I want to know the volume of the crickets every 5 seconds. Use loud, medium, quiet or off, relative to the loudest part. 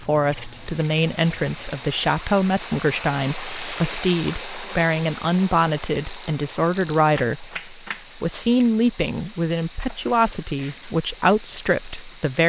medium, loud, loud.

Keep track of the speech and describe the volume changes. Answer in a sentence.
The loudness of the speech stays about the same.